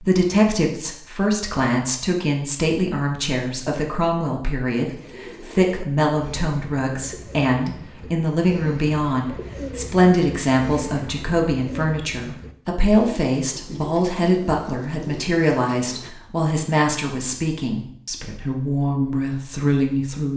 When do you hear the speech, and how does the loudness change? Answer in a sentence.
You can hear the speech from 0.0 to 20.3 s, at a steady volume.